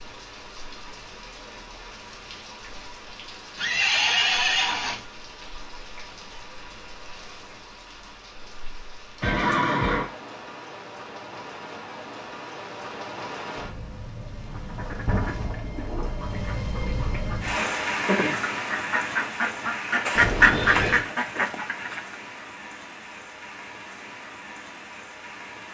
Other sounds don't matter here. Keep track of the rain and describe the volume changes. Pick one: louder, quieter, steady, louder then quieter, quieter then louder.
louder then quieter.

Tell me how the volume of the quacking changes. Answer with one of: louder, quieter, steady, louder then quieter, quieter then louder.
louder.